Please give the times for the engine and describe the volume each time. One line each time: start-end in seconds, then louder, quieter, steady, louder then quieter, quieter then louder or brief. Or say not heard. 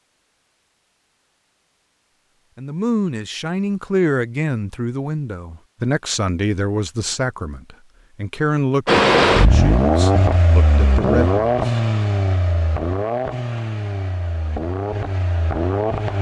8.8-16.1 quieter.